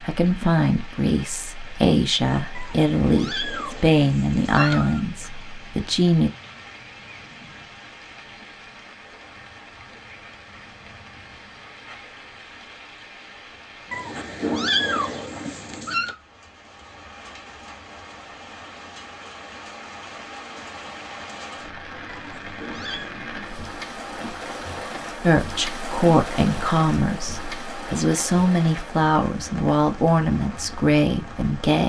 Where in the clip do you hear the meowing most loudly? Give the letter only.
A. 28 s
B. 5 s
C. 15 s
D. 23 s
C.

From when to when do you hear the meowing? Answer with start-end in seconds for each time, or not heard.
2.5-5.0, 13.9-16.1, 22.1-23.1.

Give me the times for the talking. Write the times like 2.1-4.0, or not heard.
0.0-6.3, 25.2-31.8.